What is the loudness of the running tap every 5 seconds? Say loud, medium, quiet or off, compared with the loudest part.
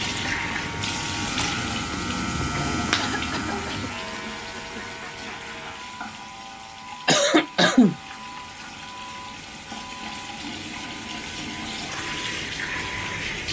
loud, medium, loud.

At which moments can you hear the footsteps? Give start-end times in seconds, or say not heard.
not heard.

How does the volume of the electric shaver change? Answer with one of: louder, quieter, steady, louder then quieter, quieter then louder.
quieter.